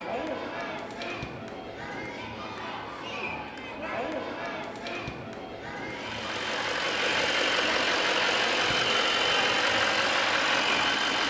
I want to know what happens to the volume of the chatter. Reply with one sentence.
The volume of the chatter stays about the same.